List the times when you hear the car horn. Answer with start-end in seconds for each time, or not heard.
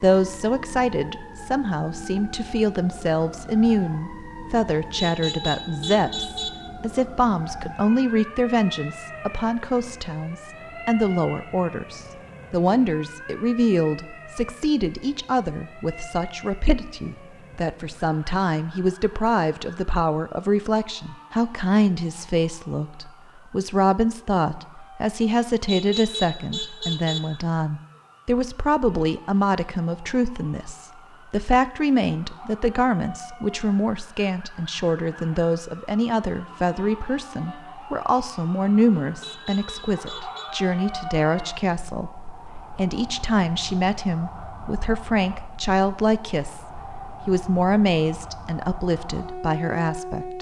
5.0-6.5, 25.4-27.2, 39.0-40.5.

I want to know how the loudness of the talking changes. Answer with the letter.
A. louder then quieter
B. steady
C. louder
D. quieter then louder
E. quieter
B.